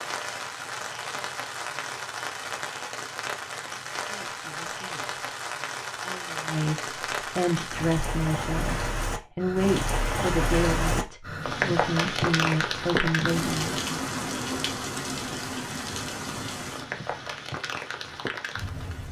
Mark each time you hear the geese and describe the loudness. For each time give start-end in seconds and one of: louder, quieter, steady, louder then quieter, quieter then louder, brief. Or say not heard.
not heard.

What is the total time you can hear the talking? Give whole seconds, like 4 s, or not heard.
9 s.